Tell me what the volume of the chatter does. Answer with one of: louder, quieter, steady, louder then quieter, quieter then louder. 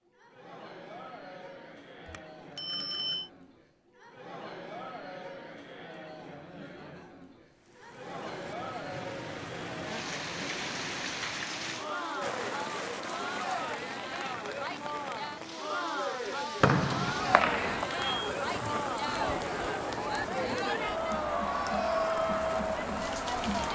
louder.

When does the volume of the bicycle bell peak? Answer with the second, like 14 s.
3 s.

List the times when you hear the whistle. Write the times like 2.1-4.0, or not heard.
16.6-17.9.